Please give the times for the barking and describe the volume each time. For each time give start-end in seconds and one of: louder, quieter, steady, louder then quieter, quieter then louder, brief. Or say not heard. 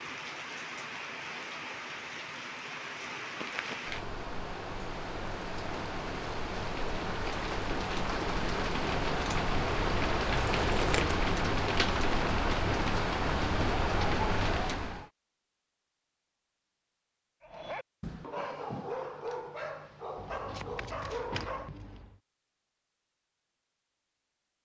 17.4-21.8 steady.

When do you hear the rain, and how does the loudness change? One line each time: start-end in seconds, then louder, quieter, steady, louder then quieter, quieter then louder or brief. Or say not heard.
0.0-15.1 louder.